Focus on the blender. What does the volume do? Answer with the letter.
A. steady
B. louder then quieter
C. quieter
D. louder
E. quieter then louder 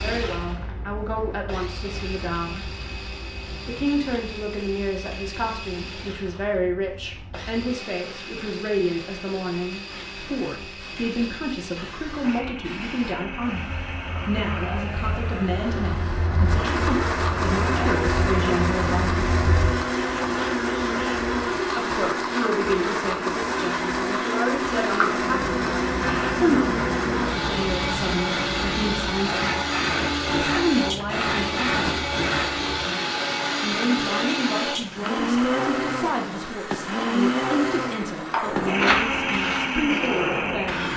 D.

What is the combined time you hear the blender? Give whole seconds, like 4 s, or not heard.
41 s.